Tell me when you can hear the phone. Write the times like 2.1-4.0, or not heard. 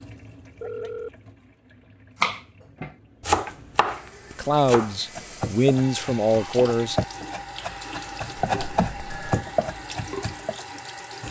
0.6-1.1, 8.4-9.4.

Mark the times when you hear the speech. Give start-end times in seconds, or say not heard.
4.3-7.0.